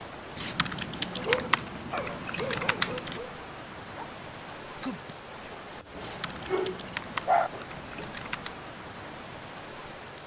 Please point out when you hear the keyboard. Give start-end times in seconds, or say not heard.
0.3-3.2, 6.0-8.6.